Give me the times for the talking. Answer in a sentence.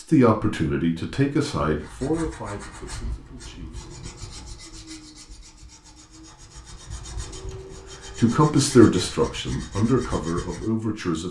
You can hear the talking from 0.0 to 4.5 s and from 7.7 to 11.2 s.